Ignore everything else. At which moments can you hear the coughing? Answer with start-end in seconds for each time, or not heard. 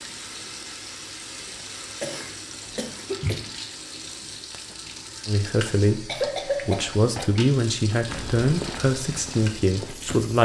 2.0-3.5, 6.0-7.2.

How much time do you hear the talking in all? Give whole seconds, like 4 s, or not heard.
5 s.